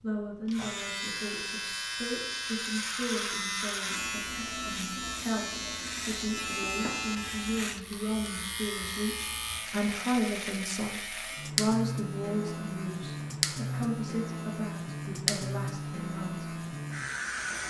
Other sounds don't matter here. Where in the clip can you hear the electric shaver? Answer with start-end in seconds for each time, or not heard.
0.0-17.6.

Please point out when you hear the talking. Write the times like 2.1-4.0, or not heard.
0.0-16.5.